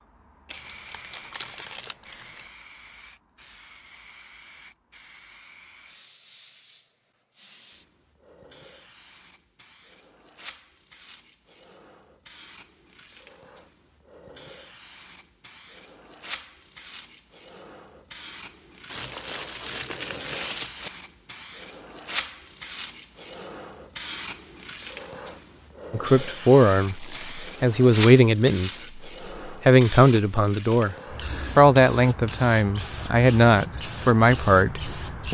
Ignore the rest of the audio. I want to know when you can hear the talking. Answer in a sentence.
You can hear the talking from 25.9 to 30.9 s and from 31.6 to 35.2 s.